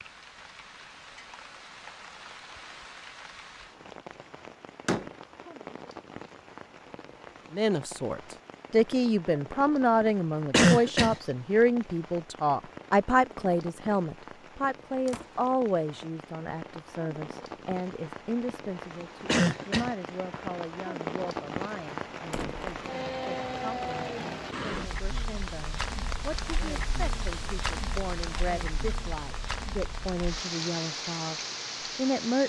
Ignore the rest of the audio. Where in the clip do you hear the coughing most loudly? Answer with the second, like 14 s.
11 s.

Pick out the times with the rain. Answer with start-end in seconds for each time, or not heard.
0.0-32.4.